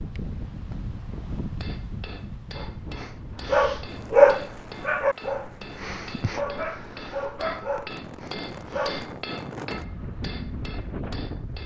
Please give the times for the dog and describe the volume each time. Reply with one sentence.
You can hear the dog from 2.5 to 9.2 s, getting louder then quieter.